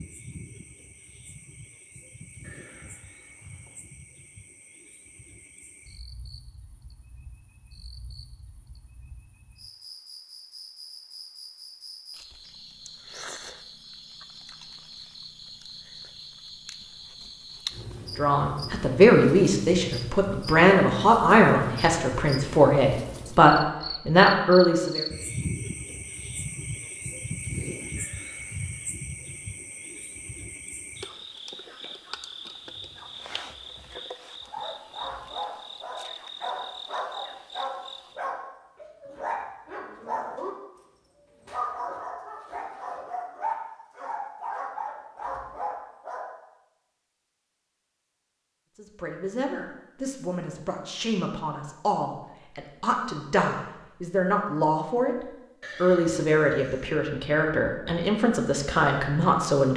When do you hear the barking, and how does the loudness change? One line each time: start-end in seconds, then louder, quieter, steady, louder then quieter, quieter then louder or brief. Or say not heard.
34.4-46.3 steady.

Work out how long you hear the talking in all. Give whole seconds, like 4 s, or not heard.
18 s.